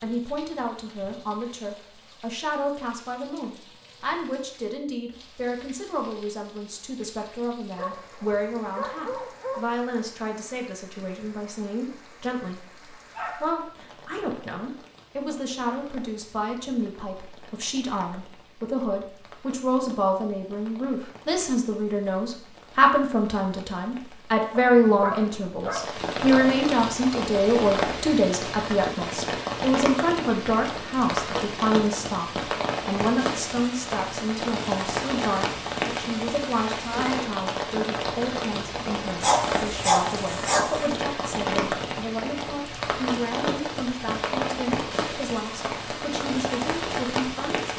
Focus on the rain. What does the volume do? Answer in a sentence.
The loudness of the rain goes up.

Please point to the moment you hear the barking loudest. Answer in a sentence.
The loudest moment of the barking is at 40 seconds.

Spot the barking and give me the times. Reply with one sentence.
You can hear the barking from 7.8 to 9.7 s, from 13.2 to 14.1 s, from 24.6 to 26.5 s and from 39.2 to 40.9 s.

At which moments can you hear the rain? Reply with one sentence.
You can hear the rain from 0.0 to 47.7 s.